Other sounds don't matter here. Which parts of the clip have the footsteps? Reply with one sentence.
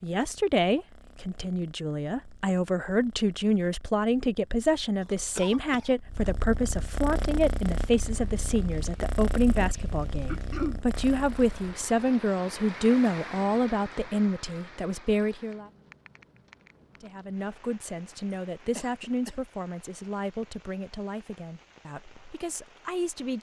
You can't hear the footsteps here.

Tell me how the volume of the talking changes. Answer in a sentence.
The loudness of the talking goes down.